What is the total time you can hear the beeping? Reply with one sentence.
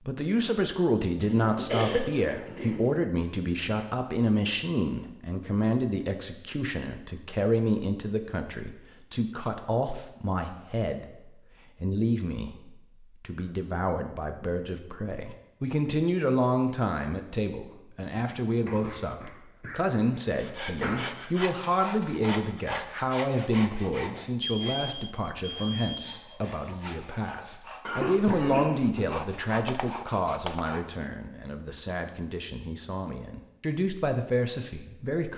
You can hear the beeping for 2 seconds altogether.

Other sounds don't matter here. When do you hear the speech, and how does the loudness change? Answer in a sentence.
The speech can be heard from 0.1 to 35.3 s, at a steady volume.